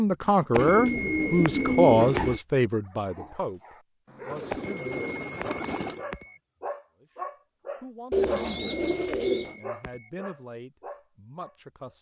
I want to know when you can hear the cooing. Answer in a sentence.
You can hear the cooing from 0.5 to 2.4 s, from 4.3 to 6.0 s and from 8.1 to 9.6 s.